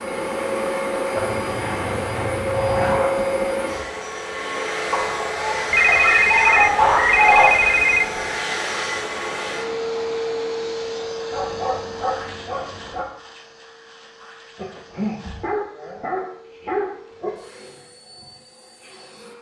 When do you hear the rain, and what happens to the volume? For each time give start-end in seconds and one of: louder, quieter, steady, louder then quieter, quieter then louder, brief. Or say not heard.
not heard.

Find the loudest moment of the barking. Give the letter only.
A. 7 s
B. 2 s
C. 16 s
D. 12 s
A.